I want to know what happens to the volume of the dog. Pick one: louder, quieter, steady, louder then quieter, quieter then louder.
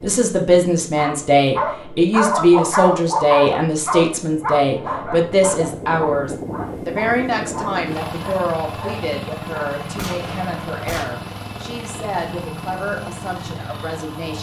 quieter.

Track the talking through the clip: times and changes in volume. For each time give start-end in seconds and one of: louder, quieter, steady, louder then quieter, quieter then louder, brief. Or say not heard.
0.0-14.3 quieter.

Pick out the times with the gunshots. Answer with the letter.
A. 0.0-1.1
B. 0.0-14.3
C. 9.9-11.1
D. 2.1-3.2
C.